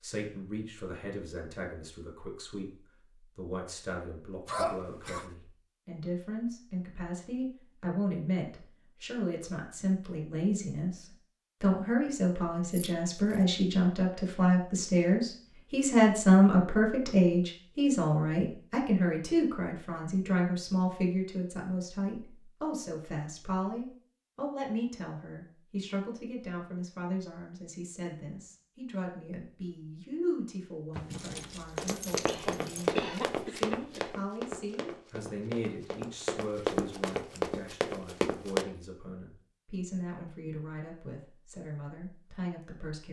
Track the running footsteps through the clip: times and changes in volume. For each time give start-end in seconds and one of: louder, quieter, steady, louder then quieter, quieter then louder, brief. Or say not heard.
31.8-38.6 quieter then louder.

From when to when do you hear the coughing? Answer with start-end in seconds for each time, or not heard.
4.5-5.3, 32.2-34.1.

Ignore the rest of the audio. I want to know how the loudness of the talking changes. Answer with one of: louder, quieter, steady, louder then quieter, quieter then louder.
louder then quieter.